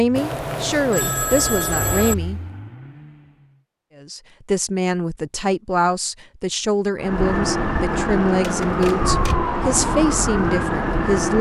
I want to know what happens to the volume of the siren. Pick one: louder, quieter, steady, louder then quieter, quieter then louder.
steady.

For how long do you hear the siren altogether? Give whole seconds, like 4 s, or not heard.
4 s.